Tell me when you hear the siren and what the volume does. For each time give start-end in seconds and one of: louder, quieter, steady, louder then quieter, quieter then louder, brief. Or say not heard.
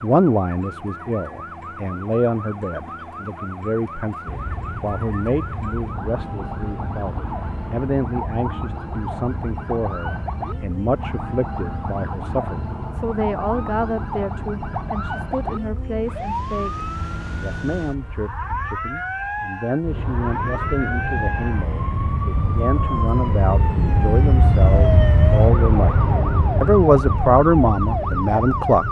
0.0-28.8 louder.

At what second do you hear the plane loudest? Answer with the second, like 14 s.
25 s.